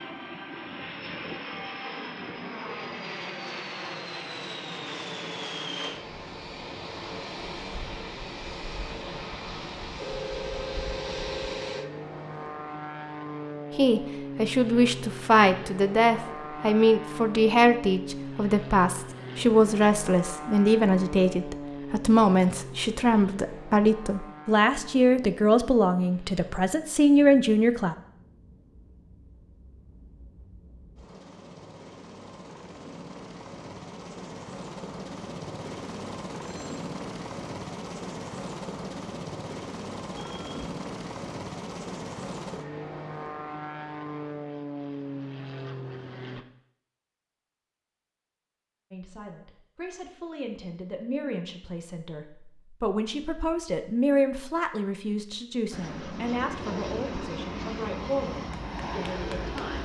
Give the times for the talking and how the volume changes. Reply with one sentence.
You can hear the talking from 13.8 to 27.9 s, at a steady volume; and from 48.9 to 59.8 s, getting louder then quieter.